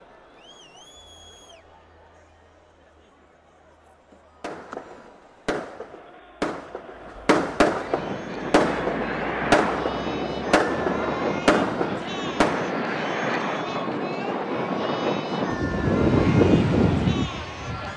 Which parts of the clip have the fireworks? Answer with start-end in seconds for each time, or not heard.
4.4-12.8.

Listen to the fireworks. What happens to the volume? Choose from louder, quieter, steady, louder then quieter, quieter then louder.
louder.